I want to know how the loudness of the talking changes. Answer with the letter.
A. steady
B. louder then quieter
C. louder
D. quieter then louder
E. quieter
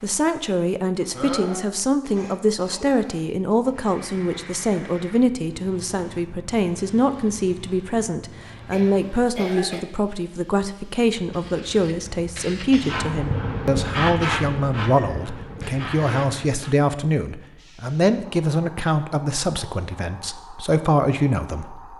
A.